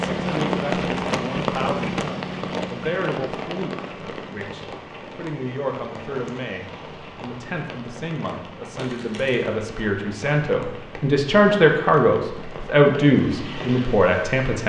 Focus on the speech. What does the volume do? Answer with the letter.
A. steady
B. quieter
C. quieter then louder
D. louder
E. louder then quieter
D.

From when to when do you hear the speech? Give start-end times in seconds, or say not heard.
0.0-14.6.